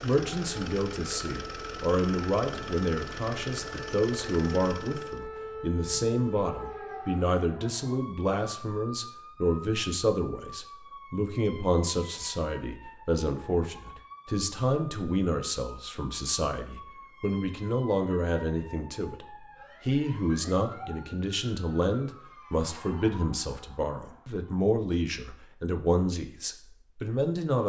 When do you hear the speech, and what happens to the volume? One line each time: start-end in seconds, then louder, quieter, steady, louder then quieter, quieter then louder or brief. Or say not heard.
0.0-27.6 steady.